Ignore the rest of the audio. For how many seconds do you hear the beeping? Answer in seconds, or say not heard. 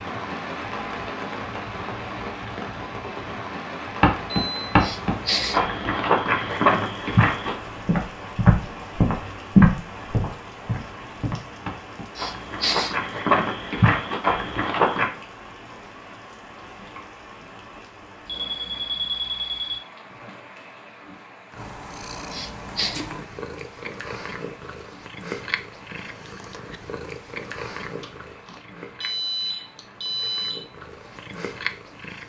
5 s.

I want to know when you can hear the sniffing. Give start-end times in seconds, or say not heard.
4.8-5.6, 12.2-12.9, 22.3-23.0.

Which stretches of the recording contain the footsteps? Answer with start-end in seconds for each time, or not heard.
4.0-15.1.